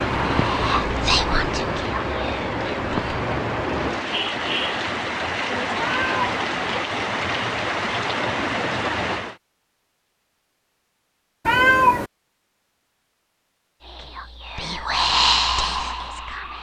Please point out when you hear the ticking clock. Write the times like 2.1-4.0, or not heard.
not heard.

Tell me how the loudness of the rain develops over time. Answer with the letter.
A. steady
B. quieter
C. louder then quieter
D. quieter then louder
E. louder
A.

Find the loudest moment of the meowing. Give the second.
12 s.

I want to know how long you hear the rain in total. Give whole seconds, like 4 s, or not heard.
9 s.